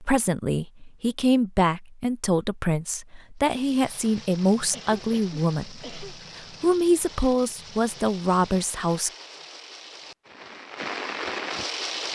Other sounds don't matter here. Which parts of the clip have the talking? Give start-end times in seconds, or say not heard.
0.0-9.1.